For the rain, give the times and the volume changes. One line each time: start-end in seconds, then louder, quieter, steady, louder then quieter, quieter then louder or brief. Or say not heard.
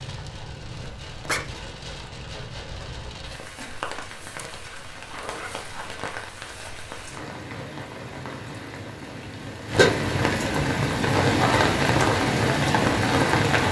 0.0-13.6 louder.